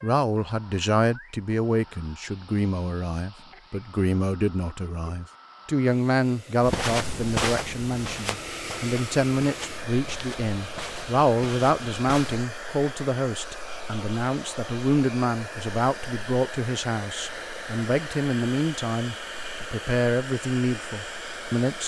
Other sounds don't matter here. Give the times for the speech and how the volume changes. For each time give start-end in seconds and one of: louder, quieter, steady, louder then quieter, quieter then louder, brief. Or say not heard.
0.0-21.8 steady.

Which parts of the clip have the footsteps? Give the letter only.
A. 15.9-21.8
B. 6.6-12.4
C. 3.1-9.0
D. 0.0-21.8
B.